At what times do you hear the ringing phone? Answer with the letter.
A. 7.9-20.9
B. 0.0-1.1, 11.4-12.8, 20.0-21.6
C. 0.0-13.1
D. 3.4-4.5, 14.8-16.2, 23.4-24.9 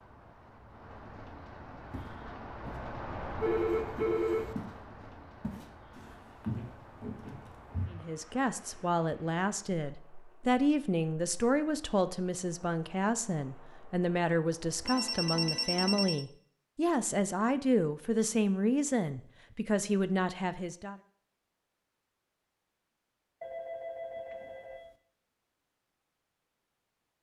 D.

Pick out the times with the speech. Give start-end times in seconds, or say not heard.
7.9-20.9.